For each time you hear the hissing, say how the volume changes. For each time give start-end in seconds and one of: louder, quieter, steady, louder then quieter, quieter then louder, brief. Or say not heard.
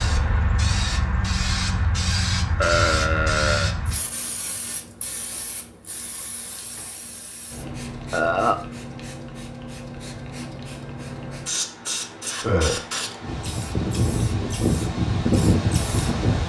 0.0-16.4 quieter then louder.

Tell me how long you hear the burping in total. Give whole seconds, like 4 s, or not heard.
2 s.